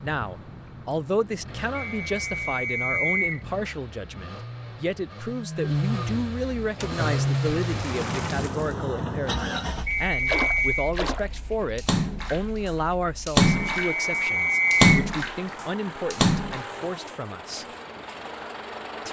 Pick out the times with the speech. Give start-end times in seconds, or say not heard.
0.0-17.6.